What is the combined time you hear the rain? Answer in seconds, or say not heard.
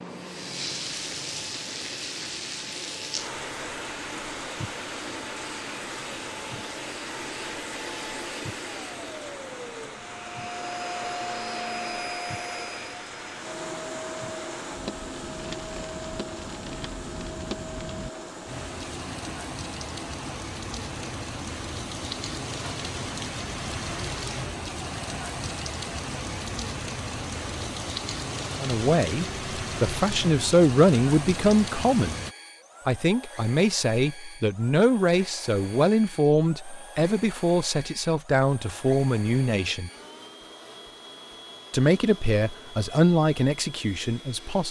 32 s.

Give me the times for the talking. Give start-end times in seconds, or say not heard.
28.6-32.1, 32.9-39.9, 41.7-44.6.